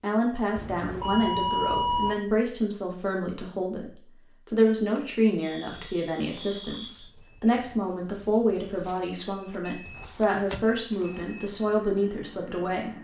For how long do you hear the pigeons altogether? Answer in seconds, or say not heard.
not heard.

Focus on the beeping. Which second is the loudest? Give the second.
2 s.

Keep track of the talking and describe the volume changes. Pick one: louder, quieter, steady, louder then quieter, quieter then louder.
steady.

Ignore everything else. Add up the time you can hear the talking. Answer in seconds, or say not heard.
13 s.